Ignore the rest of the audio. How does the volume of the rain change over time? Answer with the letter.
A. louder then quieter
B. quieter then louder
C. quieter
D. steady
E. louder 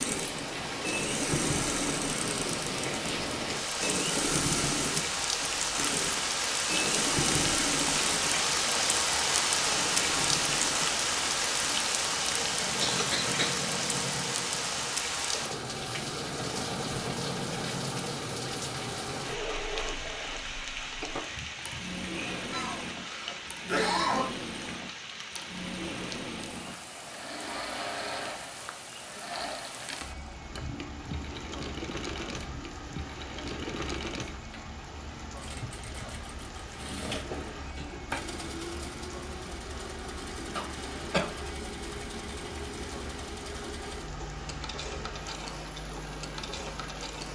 C.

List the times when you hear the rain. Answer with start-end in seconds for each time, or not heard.
0.0-47.2.